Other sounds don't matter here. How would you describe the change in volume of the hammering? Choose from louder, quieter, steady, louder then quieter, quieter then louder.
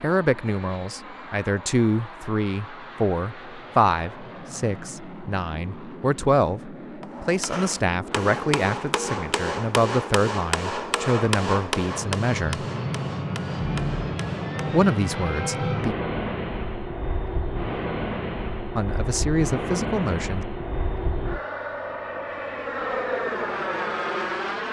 quieter.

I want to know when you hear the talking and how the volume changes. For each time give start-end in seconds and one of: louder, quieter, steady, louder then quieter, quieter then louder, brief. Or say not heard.
0.0-12.7 steady
14.7-15.9 brief
18.8-20.4 brief.